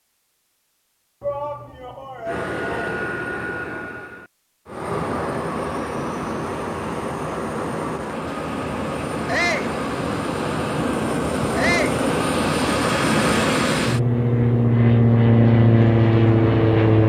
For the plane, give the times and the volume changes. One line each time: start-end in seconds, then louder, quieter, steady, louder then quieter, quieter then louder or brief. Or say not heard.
2.2-17.0 louder.